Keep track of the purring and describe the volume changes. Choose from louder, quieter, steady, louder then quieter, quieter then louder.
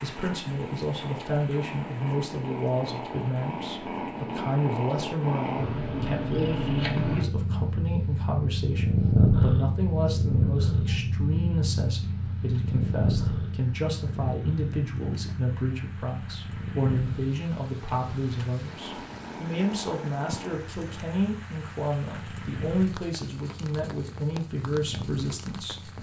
louder then quieter.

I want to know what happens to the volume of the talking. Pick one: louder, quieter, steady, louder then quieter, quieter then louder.
steady.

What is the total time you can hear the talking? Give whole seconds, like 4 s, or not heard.
26 s.